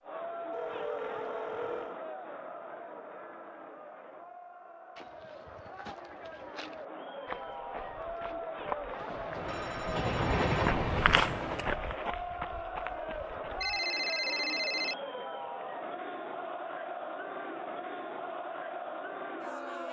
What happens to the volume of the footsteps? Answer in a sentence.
The volume of the footsteps goes up, then down.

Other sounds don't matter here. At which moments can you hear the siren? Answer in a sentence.
You can't hear the siren here.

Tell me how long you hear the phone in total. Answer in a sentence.
You can hear the phone for 4 seconds altogether.